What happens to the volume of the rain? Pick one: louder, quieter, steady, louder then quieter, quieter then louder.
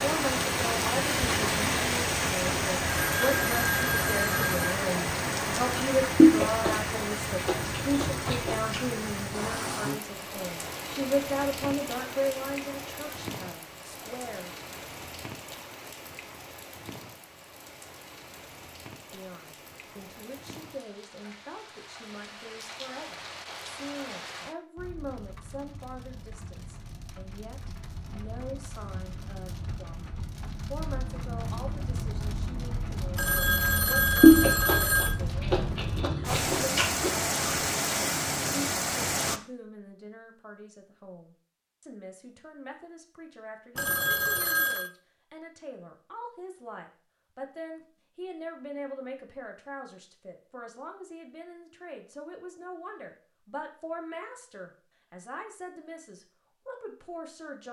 quieter then louder.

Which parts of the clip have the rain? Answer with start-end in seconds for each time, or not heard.
0.0-39.4.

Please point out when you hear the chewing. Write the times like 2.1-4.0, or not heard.
6.2-8.8, 34.2-37.1.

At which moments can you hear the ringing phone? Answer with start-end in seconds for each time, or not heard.
2.9-4.7, 33.1-35.1, 43.8-44.9.